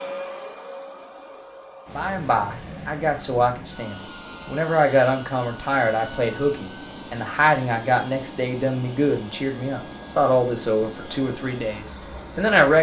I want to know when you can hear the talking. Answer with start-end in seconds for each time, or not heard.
1.9-12.7.